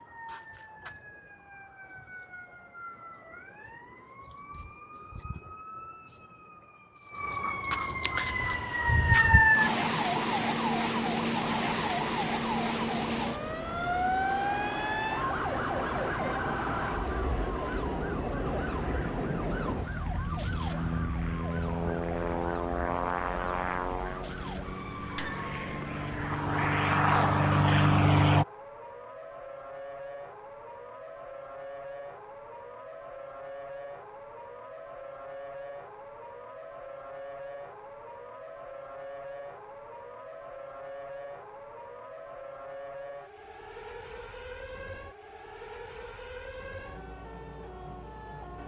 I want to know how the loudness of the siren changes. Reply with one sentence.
The volume of the siren goes down.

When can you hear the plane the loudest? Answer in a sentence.
The loudest moment of the plane is at 28 seconds.